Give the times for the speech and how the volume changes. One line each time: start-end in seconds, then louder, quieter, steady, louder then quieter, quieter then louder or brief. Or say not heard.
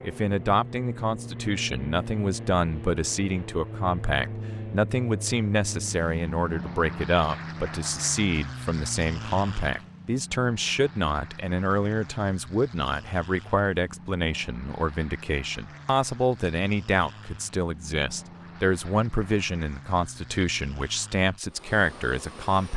0.0-22.7 steady.